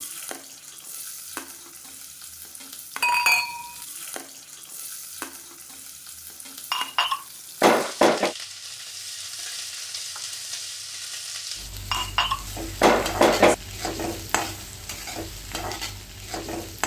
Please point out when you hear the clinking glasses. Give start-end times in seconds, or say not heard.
3.0-3.7, 6.7-8.3, 11.9-13.6.